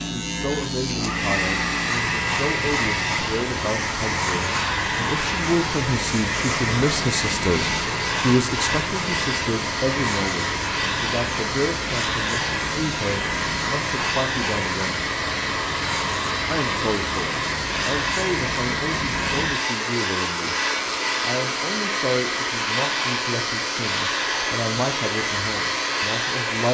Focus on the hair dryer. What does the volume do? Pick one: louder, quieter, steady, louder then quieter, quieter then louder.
steady.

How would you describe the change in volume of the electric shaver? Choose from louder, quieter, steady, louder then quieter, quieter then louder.
steady.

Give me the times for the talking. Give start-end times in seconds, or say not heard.
0.1-15.0, 16.5-20.6, 21.2-26.6.